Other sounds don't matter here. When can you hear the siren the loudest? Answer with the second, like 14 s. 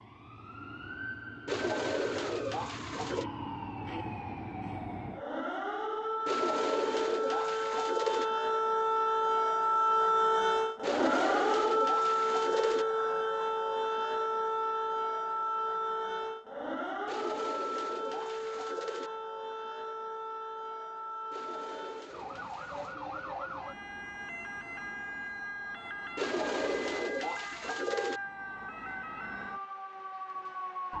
10 s.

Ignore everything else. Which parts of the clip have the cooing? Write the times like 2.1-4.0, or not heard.
1.4-3.2, 6.2-8.2, 10.8-12.8, 17.1-19.1, 21.3-22.9, 26.1-28.2.